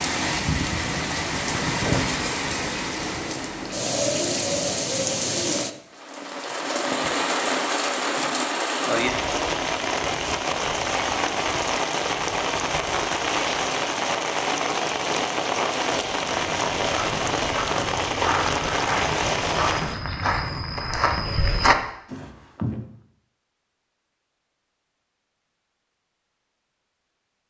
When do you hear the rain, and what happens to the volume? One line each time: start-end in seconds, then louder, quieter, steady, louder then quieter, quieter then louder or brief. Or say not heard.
0.0-20.0 steady.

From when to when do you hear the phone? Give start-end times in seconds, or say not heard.
not heard.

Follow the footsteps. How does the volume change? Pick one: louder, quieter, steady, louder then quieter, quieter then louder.
louder.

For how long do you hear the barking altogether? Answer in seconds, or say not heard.
not heard.